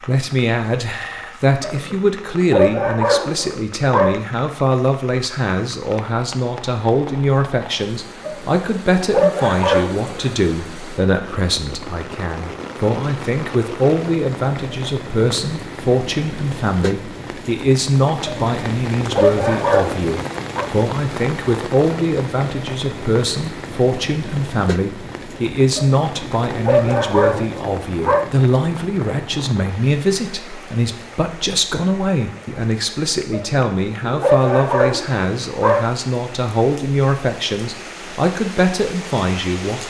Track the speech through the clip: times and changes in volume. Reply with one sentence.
You can hear the speech from 0.1 to 39.8 s, at a steady volume.